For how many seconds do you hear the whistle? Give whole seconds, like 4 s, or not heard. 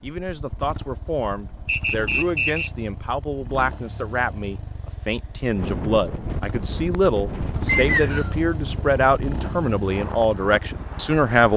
2 s.